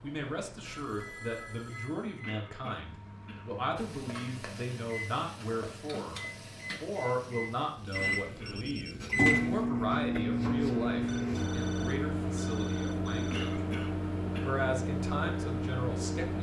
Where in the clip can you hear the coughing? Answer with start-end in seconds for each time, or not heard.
2.2-3.5, 8.2-8.6, 13.3-14.6.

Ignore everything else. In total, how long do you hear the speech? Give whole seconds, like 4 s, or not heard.
15 s.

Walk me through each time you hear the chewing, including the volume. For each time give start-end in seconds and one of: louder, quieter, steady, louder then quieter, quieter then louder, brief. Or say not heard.
not heard.